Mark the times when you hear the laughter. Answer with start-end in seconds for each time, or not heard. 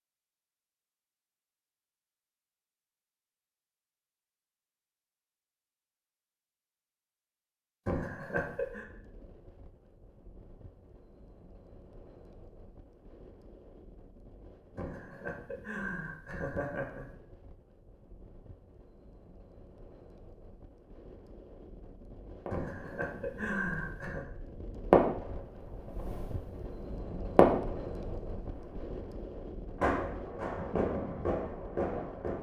7.8-8.8, 14.8-17.1, 22.5-24.2.